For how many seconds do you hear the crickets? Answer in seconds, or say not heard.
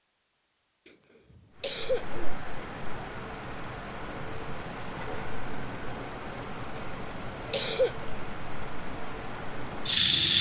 9 s.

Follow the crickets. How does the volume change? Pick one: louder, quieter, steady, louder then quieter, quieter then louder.
steady.